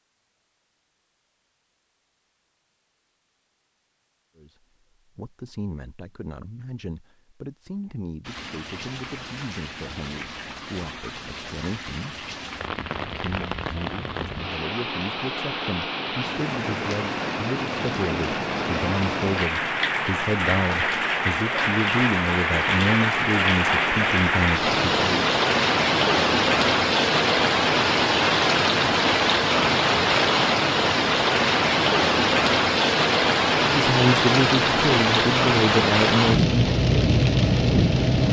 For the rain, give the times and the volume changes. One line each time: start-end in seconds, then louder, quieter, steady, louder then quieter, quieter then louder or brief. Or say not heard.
8.2-38.2 louder.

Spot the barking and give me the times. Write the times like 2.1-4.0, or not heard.
not heard.